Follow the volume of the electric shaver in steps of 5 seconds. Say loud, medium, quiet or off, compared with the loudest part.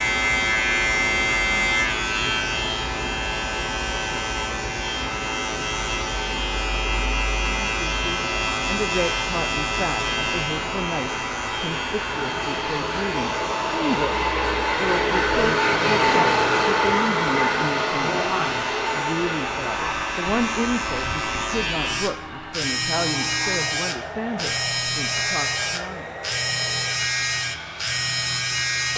loud, loud, medium, medium, loud, loud.